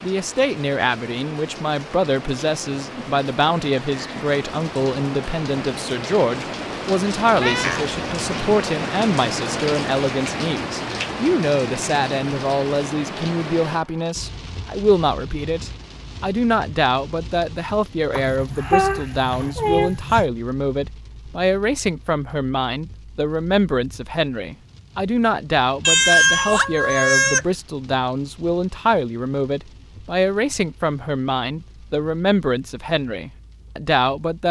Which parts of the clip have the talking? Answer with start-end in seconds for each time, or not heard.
0.0-34.4.